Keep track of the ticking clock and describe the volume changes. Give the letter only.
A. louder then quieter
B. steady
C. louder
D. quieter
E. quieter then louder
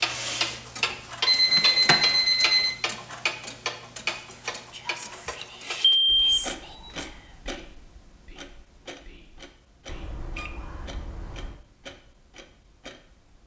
D.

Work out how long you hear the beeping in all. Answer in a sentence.
You can hear the beeping for 5 seconds altogether.